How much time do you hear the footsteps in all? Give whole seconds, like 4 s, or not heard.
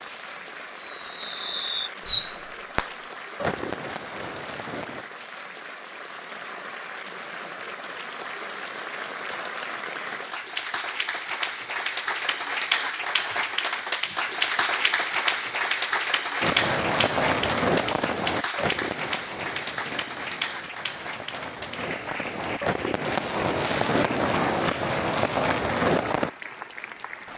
not heard.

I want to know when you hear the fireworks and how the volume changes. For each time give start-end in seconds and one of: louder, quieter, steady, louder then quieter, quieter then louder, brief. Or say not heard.
0.0-5.0 louder then quieter
16.4-26.3 quieter then louder.